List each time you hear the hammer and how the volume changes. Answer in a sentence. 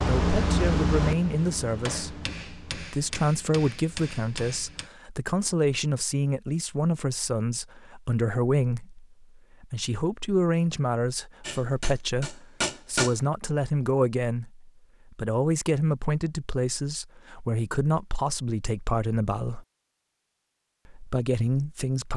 You can hear the hammer from 0.0 to 4.9 s, getting quieter; and briefly from 11.4 to 13.2 s.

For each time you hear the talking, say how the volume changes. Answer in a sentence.
You can hear the talking from 0.0 to 19.6 s, at a steady volume; and briefly from 20.9 to 22.1 s.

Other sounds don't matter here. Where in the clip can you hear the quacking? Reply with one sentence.
You can't hear the quacking here.